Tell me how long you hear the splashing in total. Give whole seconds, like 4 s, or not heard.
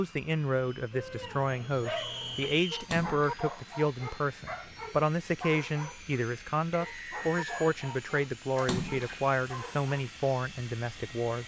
2 s.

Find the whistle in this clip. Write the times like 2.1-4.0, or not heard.
1.9-2.9, 6.7-7.8.